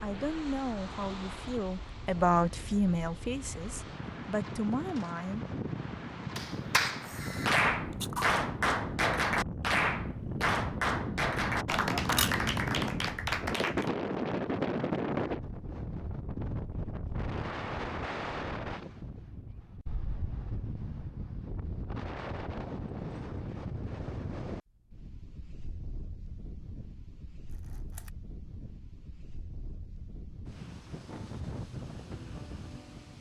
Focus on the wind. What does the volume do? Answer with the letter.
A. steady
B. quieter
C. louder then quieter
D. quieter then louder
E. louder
C.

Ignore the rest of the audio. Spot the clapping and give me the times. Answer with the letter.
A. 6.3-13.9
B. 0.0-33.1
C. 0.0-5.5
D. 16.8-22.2
A.